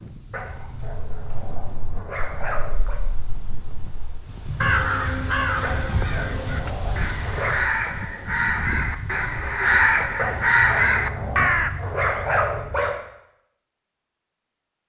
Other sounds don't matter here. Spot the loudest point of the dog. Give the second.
12 s.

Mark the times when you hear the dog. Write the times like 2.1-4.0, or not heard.
0.3-3.0, 5.6-7.5, 10.2-12.9.